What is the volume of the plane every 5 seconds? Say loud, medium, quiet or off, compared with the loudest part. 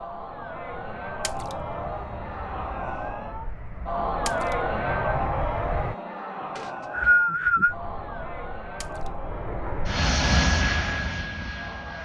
quiet, medium, loud.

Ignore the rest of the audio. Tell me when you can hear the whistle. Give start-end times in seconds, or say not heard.
6.5-7.8.